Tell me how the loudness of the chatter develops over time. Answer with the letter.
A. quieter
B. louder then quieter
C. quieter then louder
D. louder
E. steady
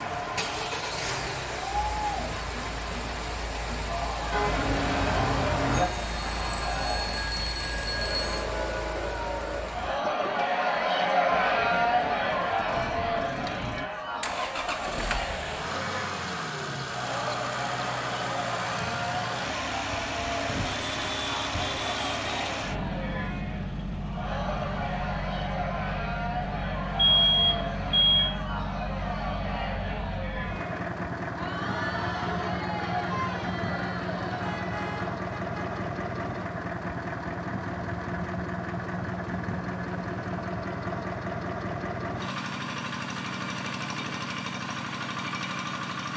B.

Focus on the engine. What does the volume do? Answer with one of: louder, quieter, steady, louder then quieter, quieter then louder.
steady.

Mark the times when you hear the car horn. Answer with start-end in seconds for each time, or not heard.
4.3-5.8, 20.4-22.5, 34.4-35.8.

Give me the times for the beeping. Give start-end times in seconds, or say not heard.
5.7-8.4, 26.9-28.3.